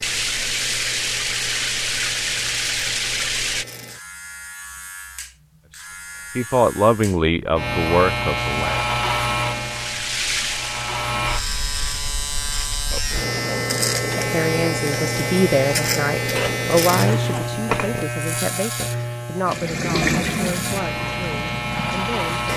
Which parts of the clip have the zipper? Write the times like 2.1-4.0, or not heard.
16.4-18.1.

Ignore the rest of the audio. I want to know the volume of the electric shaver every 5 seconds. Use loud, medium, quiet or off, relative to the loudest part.
quiet, loud, loud, loud, loud.